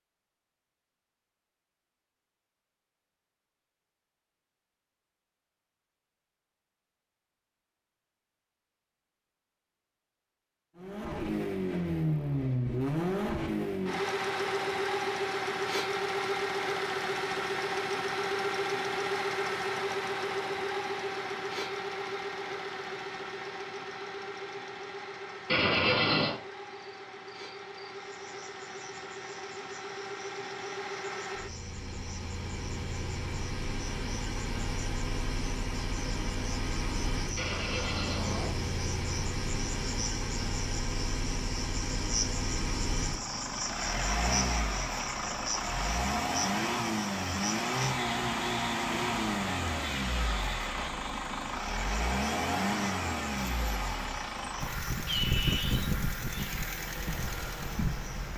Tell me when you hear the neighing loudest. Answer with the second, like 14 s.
26 s.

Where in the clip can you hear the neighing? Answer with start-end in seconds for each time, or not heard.
25.4-26.4, 37.4-38.5.